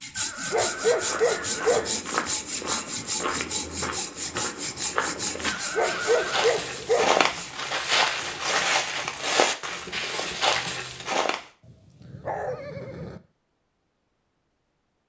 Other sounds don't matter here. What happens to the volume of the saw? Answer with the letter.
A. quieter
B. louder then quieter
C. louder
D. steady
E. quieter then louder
A.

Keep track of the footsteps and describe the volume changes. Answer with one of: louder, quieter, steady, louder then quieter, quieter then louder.
louder.